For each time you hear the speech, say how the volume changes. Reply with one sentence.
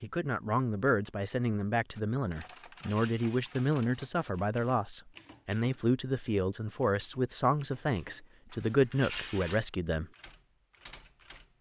You can hear the speech from 0.0 to 10.1 s, at a steady volume.